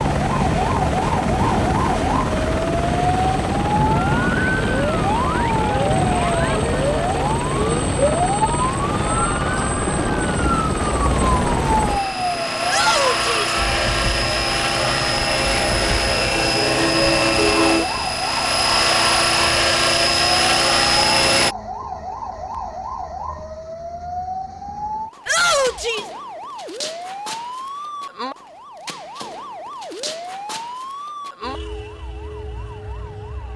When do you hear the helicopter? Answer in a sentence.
You can hear the helicopter from 0.0 to 21.6 s.